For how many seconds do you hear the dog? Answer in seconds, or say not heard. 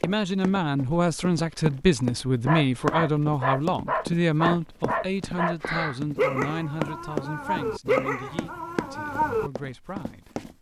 7 s.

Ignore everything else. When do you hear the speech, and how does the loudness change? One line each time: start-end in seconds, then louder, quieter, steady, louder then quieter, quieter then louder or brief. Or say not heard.
0.0-10.5 quieter.